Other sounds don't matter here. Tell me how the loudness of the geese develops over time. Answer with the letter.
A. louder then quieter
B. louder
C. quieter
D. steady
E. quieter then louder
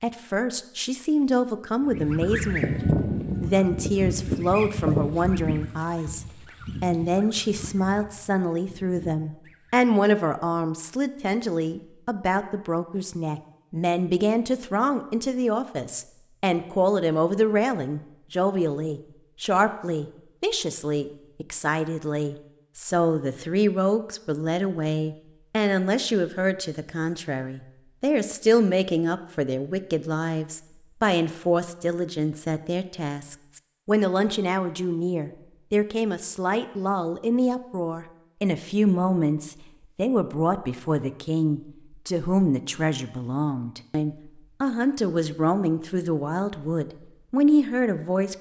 C.